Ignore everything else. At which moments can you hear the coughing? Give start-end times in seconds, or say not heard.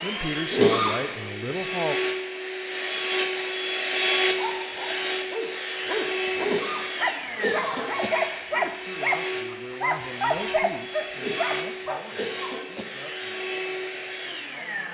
0.5-1.3, 6.4-8.1, 11.2-12.8.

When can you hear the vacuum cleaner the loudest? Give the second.
4 s.